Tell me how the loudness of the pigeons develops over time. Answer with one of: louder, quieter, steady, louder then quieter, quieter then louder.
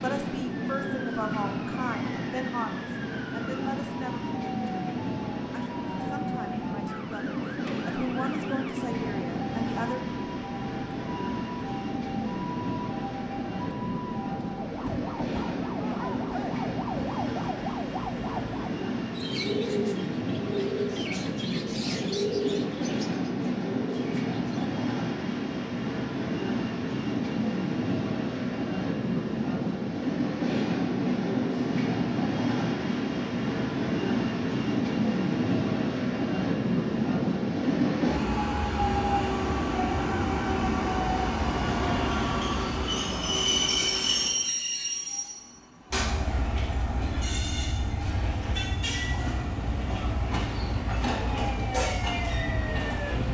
quieter.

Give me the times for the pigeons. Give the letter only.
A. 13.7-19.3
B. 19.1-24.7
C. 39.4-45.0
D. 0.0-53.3
B.